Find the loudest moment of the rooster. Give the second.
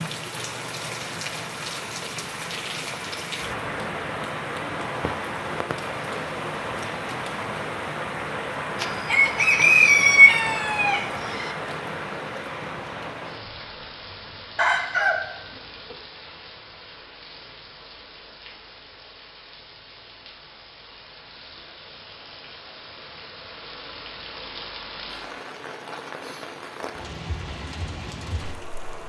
10 s.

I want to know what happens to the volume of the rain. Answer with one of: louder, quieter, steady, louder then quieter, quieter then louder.
quieter then louder.